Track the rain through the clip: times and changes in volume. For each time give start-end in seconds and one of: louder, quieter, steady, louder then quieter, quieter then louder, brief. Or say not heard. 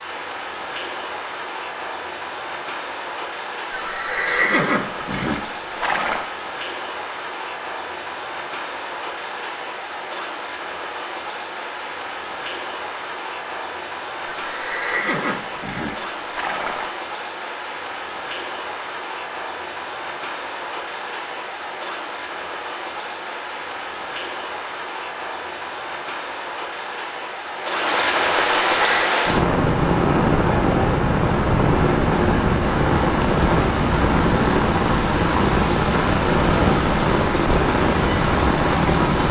0.0-39.2 louder.